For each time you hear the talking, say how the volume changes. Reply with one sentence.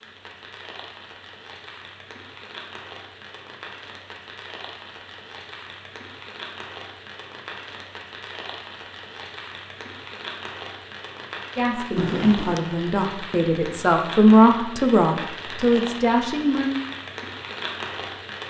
You can hear the talking from 11.6 to 16.7 s, getting louder then quieter.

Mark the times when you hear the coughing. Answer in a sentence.
You can hear the coughing from 11.9 to 12.6 s.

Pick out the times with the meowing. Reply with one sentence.
The meowing can't be heard in this clip.